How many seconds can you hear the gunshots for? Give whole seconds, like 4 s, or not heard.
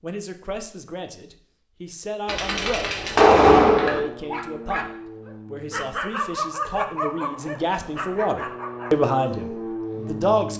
2 s.